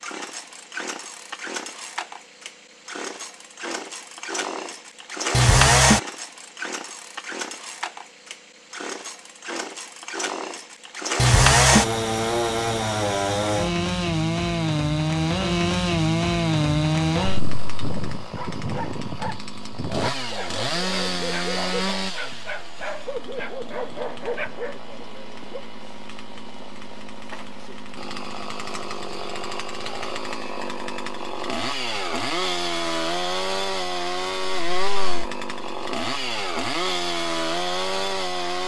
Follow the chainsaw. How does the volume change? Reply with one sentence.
The volume of the chainsaw goes down, then up.